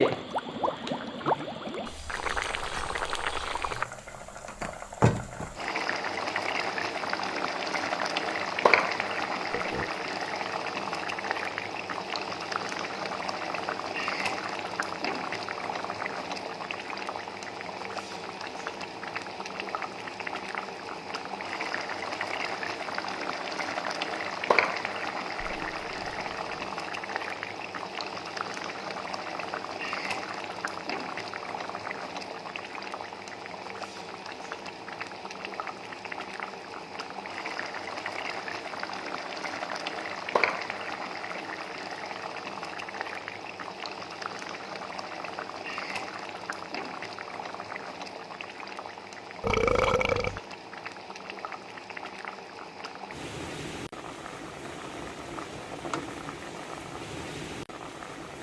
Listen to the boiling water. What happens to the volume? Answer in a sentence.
The volume of the boiling water goes down.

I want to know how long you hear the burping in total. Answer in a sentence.
The burping can be heard for 3 seconds in total.